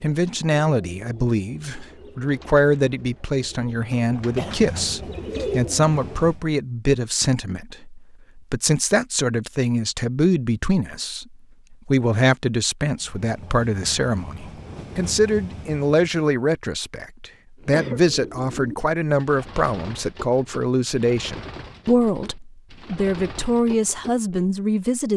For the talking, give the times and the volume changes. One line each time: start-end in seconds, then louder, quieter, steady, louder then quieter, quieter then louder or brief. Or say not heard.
0.0-25.1 steady.